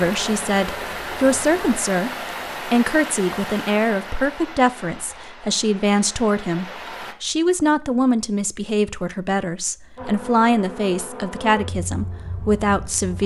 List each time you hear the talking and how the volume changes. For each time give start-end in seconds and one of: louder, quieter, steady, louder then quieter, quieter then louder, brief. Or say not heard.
0.0-13.2 steady.